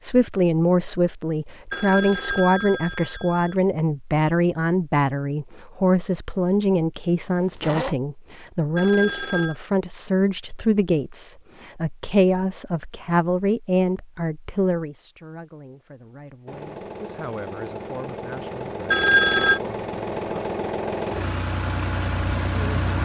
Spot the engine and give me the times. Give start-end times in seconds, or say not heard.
16.4-23.0.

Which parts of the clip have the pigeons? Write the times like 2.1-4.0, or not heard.
not heard.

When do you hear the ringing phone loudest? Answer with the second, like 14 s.
19 s.